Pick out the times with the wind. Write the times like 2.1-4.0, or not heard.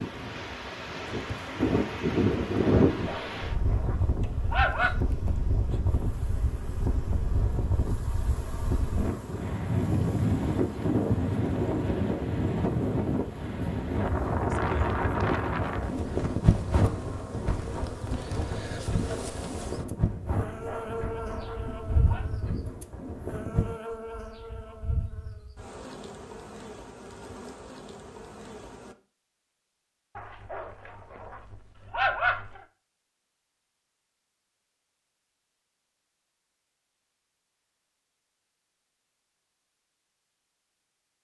0.0-23.8.